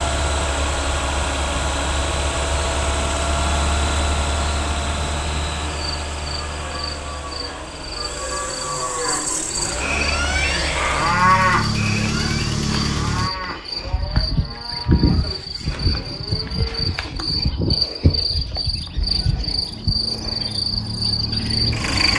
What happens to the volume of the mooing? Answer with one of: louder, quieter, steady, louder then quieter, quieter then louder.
louder then quieter.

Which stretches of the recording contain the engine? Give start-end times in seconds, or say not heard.
0.0-13.3, 19.7-22.1.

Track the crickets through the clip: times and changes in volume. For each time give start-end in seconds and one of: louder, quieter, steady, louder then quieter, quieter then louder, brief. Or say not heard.
0.0-22.1 louder.